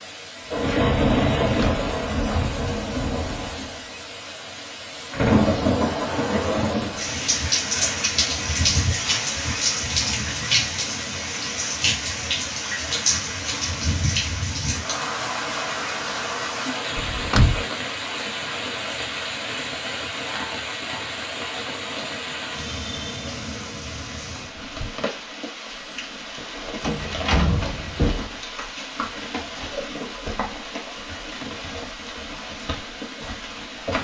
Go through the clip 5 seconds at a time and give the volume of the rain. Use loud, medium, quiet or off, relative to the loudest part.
loud, loud, loud, medium, medium, medium, medium.